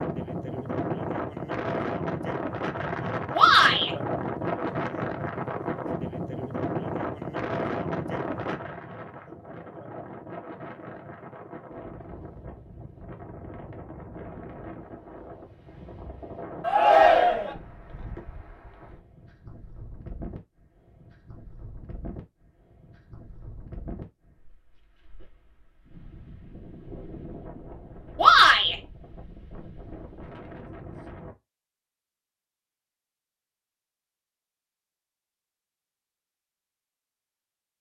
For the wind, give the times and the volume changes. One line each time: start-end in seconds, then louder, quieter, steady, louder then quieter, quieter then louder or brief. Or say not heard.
0.0-31.4 quieter.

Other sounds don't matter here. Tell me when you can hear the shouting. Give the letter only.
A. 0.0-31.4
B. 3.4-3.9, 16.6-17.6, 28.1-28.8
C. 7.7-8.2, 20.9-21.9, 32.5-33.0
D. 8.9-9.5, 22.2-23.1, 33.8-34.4
B.